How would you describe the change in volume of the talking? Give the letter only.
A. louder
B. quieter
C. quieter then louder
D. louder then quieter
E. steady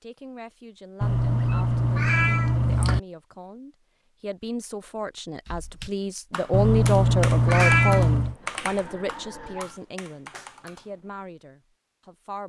D.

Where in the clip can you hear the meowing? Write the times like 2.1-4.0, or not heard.
1.0-3.0, 6.5-8.3.